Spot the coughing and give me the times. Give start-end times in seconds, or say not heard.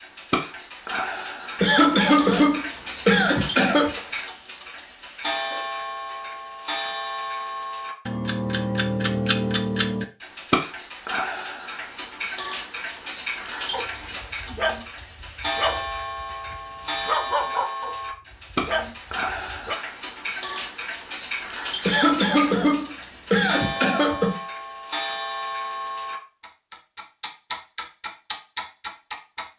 1.6-4.0, 21.9-24.4.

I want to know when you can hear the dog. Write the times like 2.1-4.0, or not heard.
13.7-19.8.